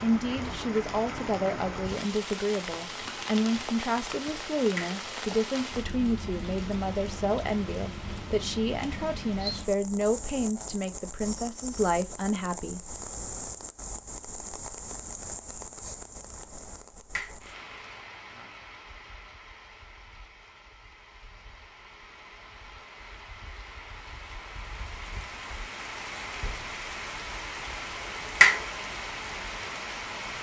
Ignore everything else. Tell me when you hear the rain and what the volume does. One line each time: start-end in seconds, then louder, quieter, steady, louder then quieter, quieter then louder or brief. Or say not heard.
0.0-30.3 quieter then louder.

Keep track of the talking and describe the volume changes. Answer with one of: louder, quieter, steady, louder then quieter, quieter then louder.
steady.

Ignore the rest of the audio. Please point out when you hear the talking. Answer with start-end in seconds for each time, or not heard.
0.0-12.8.